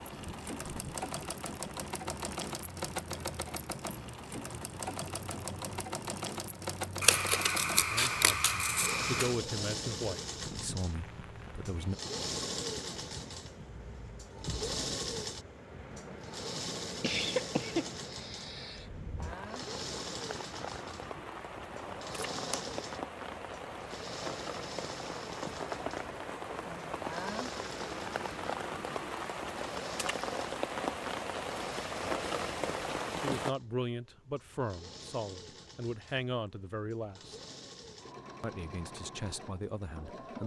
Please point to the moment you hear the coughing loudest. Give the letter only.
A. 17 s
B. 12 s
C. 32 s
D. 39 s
A.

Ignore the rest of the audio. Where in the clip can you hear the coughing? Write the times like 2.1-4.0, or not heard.
17.0-18.9.